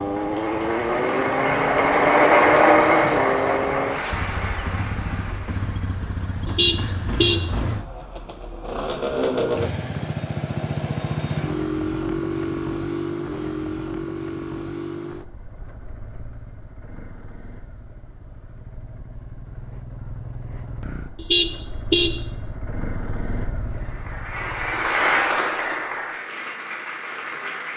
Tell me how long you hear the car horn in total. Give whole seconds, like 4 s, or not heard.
2 s.